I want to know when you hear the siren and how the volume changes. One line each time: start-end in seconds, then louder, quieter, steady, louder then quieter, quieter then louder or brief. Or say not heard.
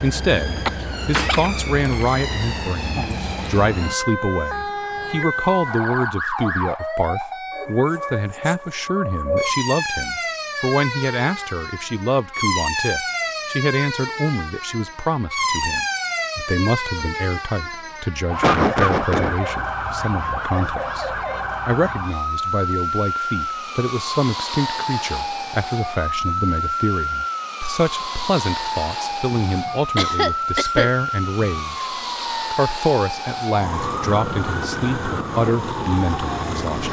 0.0-36.8 steady.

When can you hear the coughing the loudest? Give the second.
19 s.